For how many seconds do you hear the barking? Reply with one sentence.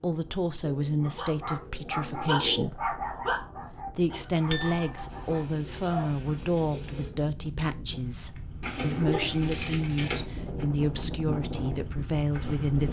The barking can be heard for 5 seconds in total.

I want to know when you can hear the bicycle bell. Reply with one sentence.
The bicycle bell can be heard from 4.5 to 5.0 s.